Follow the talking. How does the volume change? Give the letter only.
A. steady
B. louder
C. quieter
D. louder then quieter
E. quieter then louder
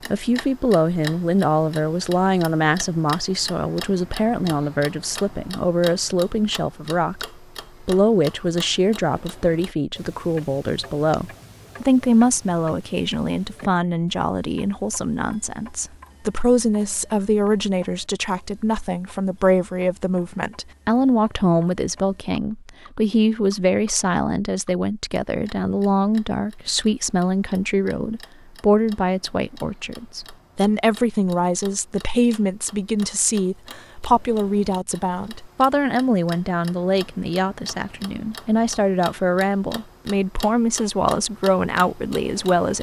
A.